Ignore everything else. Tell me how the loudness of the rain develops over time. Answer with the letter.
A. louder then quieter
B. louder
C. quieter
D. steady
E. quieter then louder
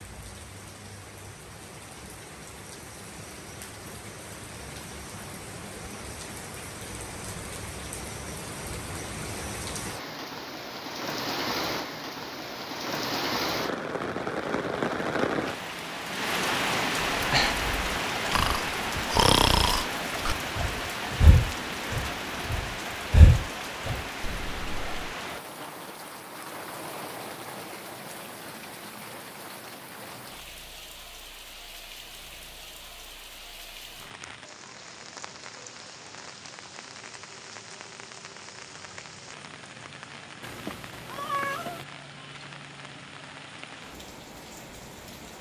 A.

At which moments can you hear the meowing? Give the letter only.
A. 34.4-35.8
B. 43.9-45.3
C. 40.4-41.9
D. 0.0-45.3
C.